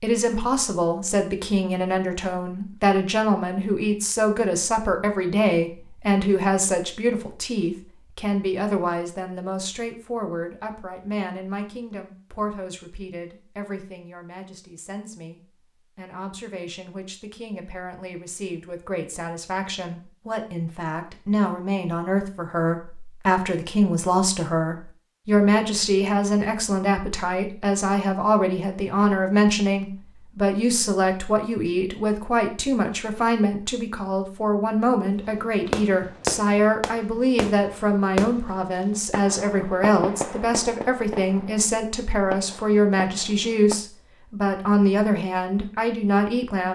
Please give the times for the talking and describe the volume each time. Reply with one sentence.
The talking can be heard from 0.0 to 46.7 s, getting quieter then louder.